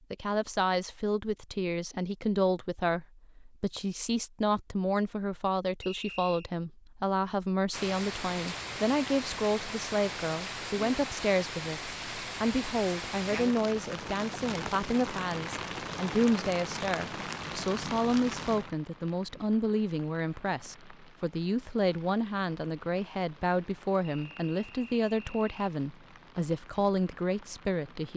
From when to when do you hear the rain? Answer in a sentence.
You can hear the rain from 7.7 to 28.1 s.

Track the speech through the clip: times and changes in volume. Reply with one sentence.
You can hear the speech from 0.1 to 28.1 s, at a steady volume.